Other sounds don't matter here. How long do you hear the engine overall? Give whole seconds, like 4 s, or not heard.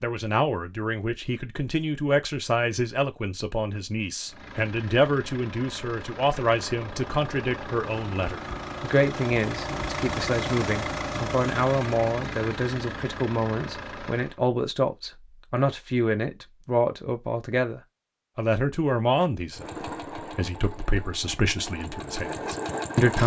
14 s.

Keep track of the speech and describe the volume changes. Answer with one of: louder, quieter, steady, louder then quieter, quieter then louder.
steady.